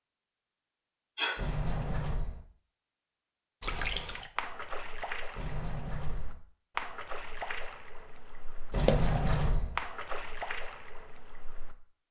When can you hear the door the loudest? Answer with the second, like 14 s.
9 s.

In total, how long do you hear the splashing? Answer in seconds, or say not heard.
8 s.